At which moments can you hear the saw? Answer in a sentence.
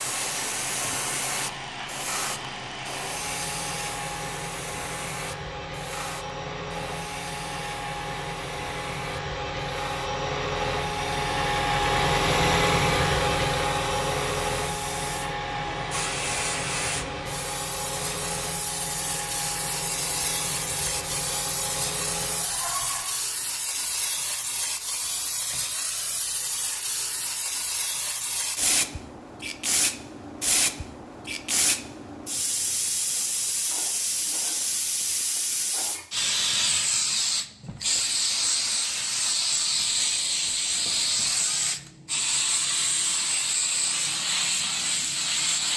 The saw can't be heard in this clip.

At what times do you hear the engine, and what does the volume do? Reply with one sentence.
You can hear the engine from 0.0 to 23.2 s, getting louder then quieter.